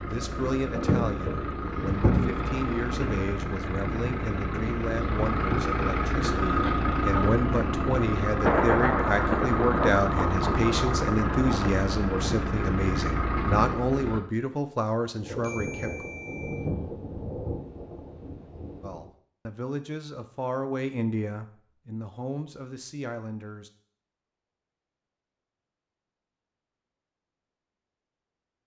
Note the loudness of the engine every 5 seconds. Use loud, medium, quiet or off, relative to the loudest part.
loud, loud, loud, off, off, off.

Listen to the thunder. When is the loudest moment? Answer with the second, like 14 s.
9 s.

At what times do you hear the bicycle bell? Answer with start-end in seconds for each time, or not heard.
15.4-16.7.